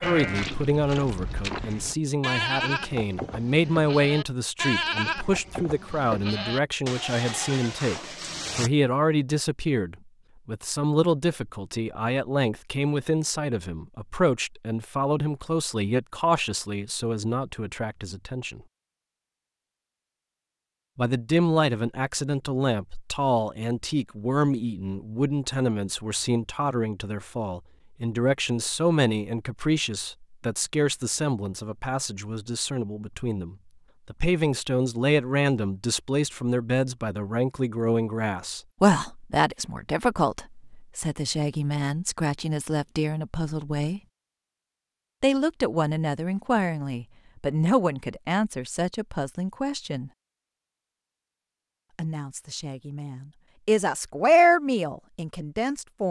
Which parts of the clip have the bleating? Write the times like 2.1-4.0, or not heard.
0.0-8.7.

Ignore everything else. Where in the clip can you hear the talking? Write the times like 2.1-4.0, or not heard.
0.0-18.6, 20.9-44.0, 45.2-50.1, 52.0-56.0.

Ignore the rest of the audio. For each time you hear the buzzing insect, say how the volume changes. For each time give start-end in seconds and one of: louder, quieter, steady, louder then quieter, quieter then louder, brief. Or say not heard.
not heard.